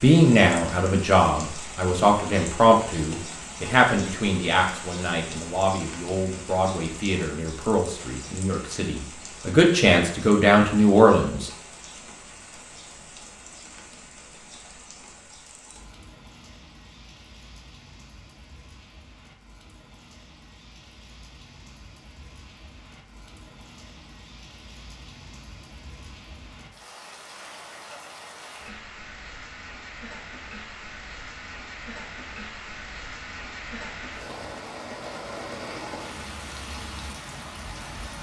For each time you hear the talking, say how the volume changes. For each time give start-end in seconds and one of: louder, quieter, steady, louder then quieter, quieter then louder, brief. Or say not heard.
0.0-11.5 quieter then louder.